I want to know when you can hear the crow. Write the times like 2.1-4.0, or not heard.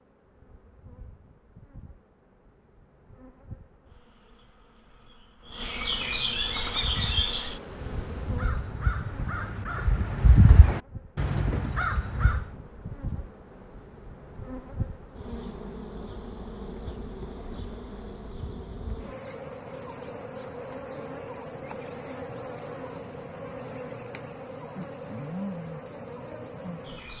6.5-12.6.